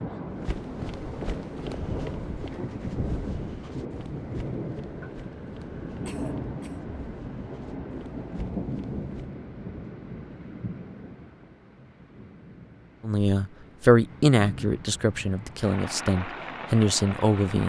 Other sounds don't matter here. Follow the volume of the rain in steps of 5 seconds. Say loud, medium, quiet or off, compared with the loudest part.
loud, loud, medium, loud.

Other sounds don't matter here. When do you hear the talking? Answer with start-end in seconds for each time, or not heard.
13.0-17.6.